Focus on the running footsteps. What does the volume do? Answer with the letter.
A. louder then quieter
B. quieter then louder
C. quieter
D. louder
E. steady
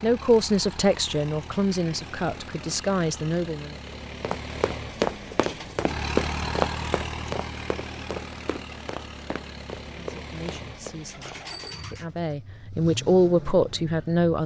C.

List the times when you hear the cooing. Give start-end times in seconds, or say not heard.
11.1-12.3.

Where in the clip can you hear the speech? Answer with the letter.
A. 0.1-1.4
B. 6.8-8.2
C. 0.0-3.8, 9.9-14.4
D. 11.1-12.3
C.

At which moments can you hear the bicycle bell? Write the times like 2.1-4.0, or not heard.
11.4-12.0.